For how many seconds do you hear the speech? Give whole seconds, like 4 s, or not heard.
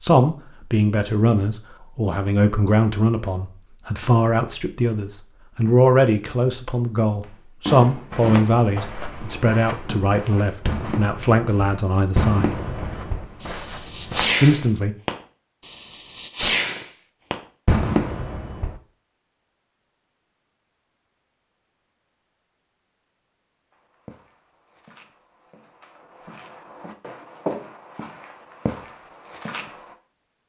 13 s.